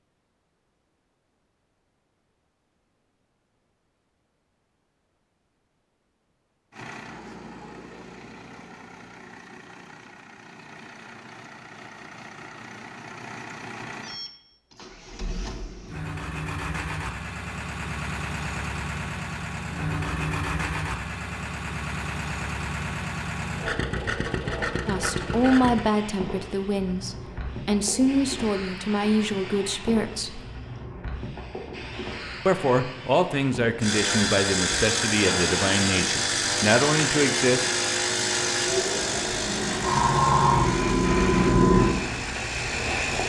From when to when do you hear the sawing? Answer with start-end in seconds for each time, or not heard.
not heard.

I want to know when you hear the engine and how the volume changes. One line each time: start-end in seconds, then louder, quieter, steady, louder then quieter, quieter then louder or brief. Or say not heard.
6.7-25.9 louder
33.8-43.2 quieter.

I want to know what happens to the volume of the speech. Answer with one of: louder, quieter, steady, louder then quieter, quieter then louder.
steady.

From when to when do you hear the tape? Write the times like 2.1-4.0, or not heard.
not heard.